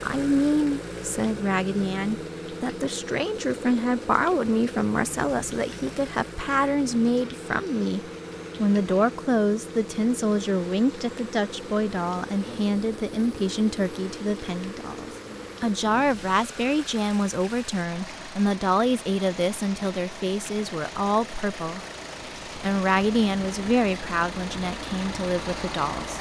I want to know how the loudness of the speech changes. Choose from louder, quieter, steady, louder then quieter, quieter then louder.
steady.